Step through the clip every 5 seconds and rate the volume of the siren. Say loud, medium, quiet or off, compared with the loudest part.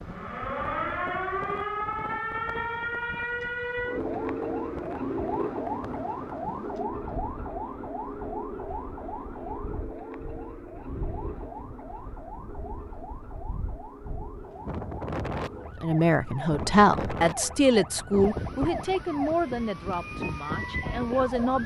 loud, loud, medium, medium, medium.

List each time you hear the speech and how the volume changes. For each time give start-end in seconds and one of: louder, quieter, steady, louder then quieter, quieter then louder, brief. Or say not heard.
15.8-21.6 quieter.